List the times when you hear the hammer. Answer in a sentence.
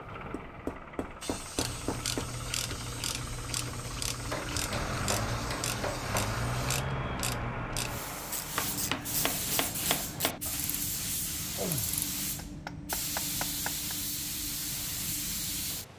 The hammer can be heard from 0.3 to 2.4 s, from 4.2 to 6.3 s, from 8.6 to 10.4 s and from 12.3 to 13.9 s.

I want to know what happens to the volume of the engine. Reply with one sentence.
The loudness of the engine goes up.